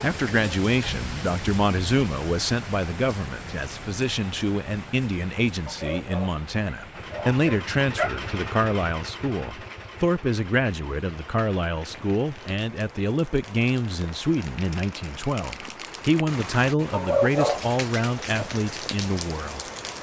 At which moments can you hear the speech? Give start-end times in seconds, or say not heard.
0.0-19.6.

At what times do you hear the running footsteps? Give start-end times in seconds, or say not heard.
not heard.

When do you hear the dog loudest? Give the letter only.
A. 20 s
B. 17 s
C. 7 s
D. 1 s
B.